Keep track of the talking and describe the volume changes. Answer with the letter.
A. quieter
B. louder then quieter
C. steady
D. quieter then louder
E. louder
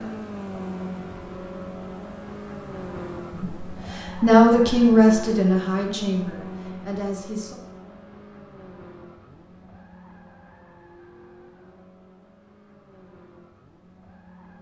A.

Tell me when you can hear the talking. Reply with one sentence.
The talking can be heard from 3.3 to 7.5 s.